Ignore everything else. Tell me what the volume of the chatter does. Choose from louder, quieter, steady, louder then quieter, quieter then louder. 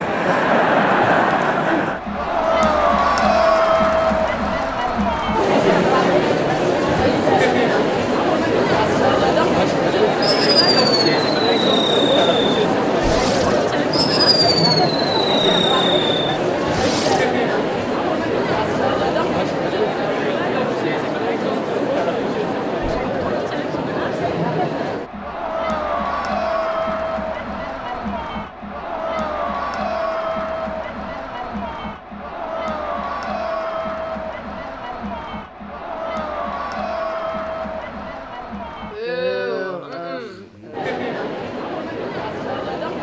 quieter.